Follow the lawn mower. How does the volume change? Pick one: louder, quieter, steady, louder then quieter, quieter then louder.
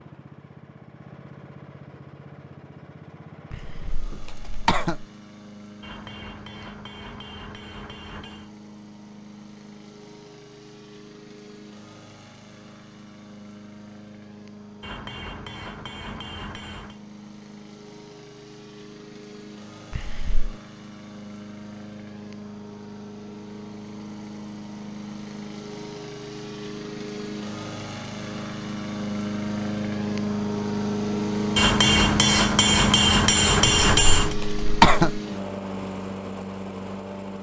louder.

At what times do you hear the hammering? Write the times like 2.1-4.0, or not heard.
5.8-8.5, 14.8-17.0, 31.6-34.4.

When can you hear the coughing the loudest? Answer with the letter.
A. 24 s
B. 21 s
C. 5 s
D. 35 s
D.